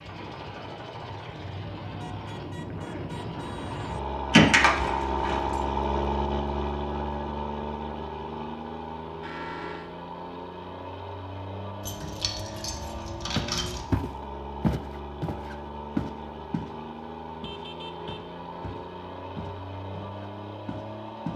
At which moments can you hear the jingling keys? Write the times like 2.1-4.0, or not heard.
4.3-5.6, 11.8-13.8.